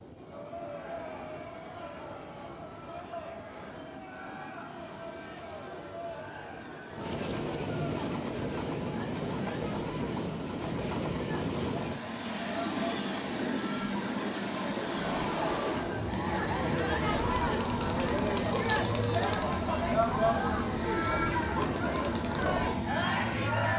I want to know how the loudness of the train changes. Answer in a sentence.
The loudness of the train goes up.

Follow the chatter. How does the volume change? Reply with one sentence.
The volume of the chatter goes up.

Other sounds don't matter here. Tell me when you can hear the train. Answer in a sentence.
You can hear the train from 0.0 to 23.7 s.